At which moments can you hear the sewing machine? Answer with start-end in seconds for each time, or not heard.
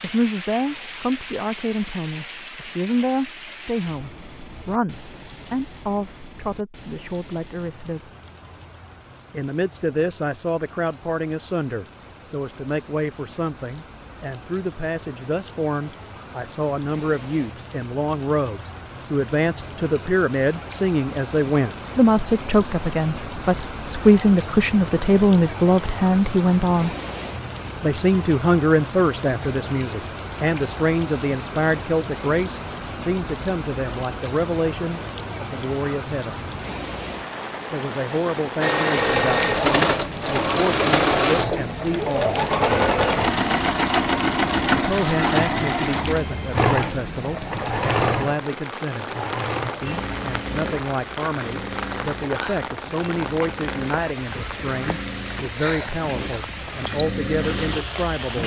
38.6-58.4.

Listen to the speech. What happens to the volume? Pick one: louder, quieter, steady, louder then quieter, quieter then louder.
louder then quieter.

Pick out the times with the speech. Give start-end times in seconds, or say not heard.
0.0-8.2, 9.3-26.9, 27.8-36.5, 37.7-42.4, 44.7-49.1, 49.8-58.4.